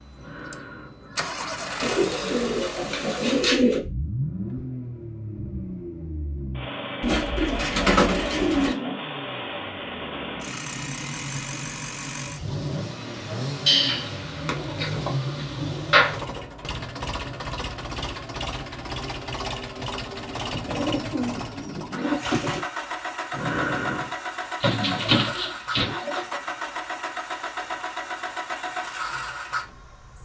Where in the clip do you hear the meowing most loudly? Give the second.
24 s.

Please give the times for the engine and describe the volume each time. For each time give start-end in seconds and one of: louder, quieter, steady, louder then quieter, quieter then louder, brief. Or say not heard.
0.0-30.2 steady.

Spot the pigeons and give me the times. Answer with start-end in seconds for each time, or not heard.
1.8-3.8, 7.0-8.8, 13.7-16.2, 20.5-22.6, 24.6-26.2.